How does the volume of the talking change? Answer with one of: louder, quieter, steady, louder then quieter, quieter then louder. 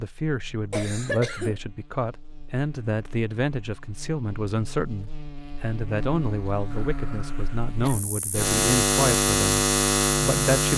steady.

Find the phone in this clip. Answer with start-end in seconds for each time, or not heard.
not heard.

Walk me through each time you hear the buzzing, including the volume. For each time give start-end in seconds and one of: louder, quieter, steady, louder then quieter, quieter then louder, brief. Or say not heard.
0.2-10.7 louder.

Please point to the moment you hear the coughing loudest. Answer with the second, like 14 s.
1 s.